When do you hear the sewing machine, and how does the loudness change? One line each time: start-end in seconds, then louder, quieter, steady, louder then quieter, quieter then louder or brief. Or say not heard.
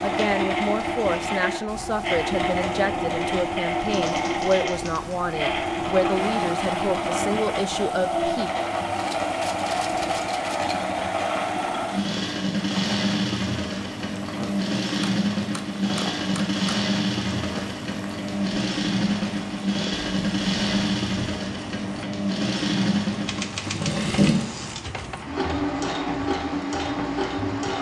0.0-27.7 steady.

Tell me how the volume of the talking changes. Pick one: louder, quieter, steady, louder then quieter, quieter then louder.
steady.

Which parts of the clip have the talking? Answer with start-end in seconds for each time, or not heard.
0.0-8.5.